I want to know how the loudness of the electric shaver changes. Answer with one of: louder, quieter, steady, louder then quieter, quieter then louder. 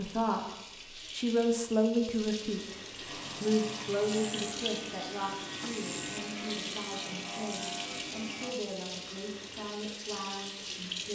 steady.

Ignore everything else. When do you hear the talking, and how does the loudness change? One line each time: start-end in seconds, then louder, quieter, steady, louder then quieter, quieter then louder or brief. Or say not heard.
0.0-0.5 brief
1.1-2.8 brief
3.4-11.1 quieter.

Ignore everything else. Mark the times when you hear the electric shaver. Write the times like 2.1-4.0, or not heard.
3.0-8.6.